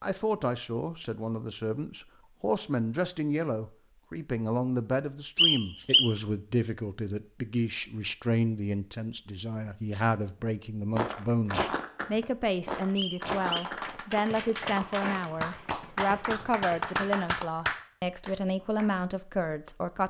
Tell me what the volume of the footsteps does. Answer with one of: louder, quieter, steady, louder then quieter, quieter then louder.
quieter.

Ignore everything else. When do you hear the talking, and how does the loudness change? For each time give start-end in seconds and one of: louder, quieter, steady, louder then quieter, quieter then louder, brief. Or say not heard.
0.0-20.0 steady.